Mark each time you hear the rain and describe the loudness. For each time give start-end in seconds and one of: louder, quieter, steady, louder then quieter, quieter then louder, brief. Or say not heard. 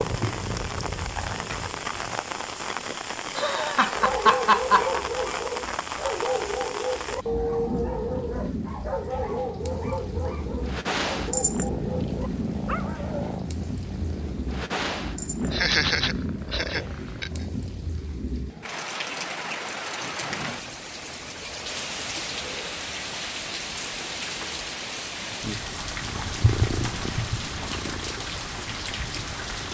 0.0-29.6 steady.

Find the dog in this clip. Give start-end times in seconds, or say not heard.
3.9-13.4.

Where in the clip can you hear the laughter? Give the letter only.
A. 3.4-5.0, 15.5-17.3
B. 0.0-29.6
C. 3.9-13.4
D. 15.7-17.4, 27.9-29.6
A.